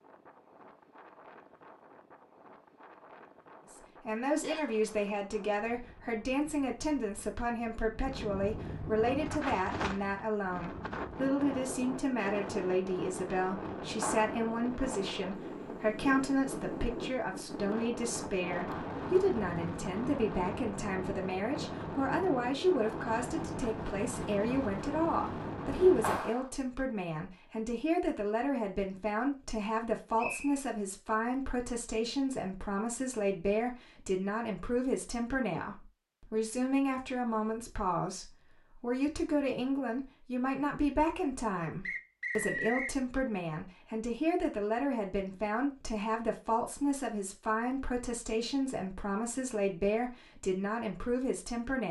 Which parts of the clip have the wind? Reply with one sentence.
You can hear the wind from 0.0 to 26.4 s.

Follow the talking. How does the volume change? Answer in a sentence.
The volume of the talking stays about the same.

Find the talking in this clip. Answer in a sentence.
The talking can be heard from 3.7 to 51.8 s.